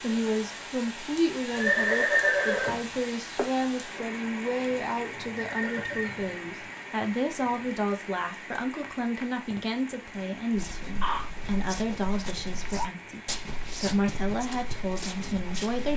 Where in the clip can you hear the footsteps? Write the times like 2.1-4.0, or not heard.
10.5-15.9.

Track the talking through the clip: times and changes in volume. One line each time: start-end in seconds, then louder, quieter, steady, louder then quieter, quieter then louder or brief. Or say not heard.
0.0-15.9 steady.